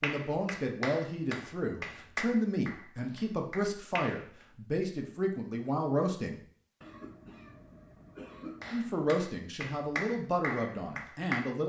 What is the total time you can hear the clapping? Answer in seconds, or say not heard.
7 s.